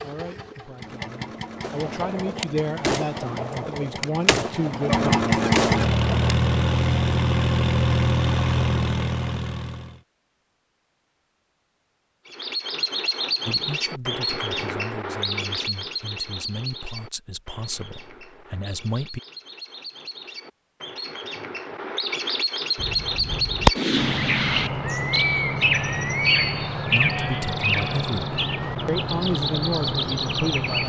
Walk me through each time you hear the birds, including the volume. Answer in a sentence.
You can hear the birds from 12.3 to 30.8 s, getting quieter then louder.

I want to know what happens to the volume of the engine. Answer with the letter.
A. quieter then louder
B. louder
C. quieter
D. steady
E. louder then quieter
B.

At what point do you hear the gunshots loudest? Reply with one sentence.
The volume of the gunshots peaks at 24 seconds.